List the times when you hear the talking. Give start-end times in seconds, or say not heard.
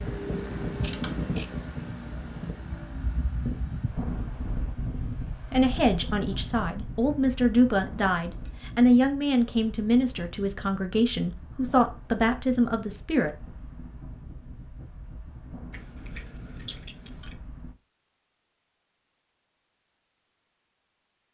5.5-13.3.